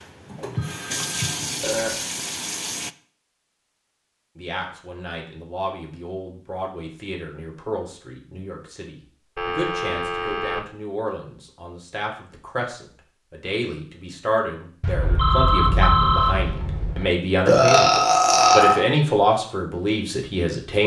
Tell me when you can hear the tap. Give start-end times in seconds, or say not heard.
0.0-3.0.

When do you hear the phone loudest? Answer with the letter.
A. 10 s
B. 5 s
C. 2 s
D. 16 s
D.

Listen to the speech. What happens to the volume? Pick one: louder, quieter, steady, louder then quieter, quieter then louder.
louder.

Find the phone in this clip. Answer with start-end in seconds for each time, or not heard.
0.6-1.4, 9.3-10.6, 14.8-17.1.